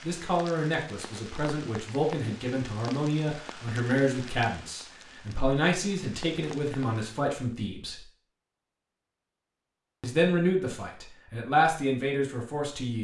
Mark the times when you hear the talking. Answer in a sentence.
You can hear the talking from 0.0 to 8.0 s and from 10.0 to 13.0 s.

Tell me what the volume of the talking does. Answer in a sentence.
The loudness of the talking stays about the same.